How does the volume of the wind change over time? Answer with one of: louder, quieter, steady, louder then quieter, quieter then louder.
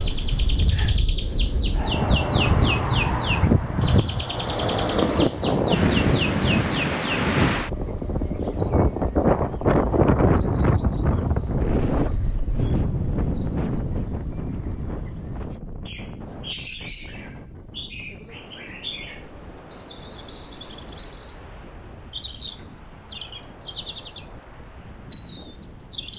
quieter.